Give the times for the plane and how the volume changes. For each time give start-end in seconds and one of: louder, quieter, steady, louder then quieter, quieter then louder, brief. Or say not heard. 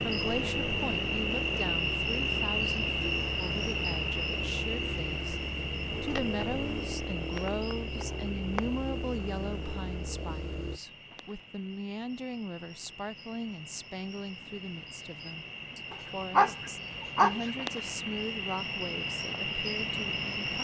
0.0-10.8 steady.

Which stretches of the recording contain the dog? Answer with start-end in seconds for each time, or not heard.
15.9-17.5.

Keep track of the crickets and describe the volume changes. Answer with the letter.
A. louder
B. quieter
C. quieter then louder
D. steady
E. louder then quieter
C.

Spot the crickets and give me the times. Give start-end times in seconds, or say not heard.
0.0-20.5.